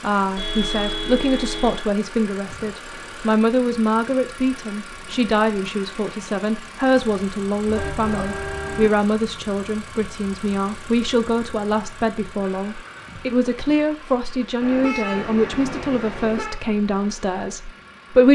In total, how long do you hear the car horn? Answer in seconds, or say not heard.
5 s.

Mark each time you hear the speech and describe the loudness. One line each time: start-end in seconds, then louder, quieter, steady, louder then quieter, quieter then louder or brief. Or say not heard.
0.0-18.2 steady.